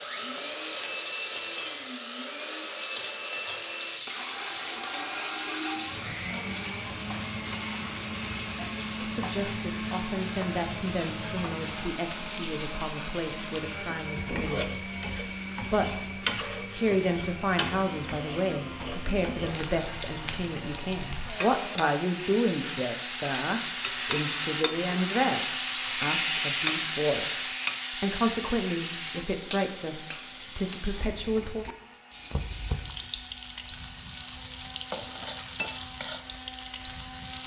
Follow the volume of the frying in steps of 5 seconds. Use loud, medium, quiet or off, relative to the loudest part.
medium, medium, medium, medium, loud, loud, medium, medium.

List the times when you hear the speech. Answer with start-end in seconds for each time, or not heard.
9.0-14.8, 15.6-31.6.